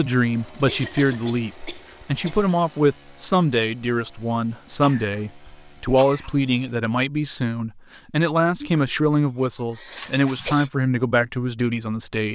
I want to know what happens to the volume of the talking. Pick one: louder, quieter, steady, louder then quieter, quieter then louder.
steady.